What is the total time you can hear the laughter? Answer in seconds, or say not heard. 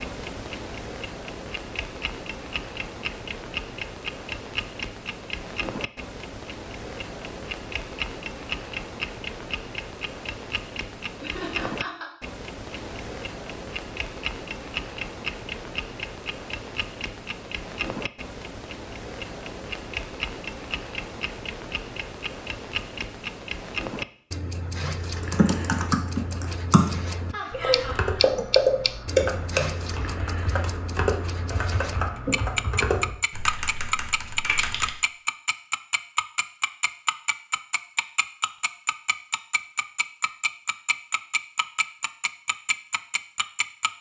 2 s.